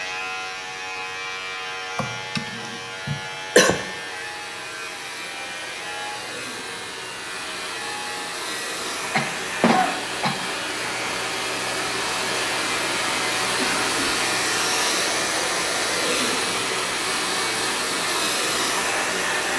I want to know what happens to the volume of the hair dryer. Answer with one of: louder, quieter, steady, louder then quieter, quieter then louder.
louder.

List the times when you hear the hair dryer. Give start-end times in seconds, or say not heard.
0.0-19.5.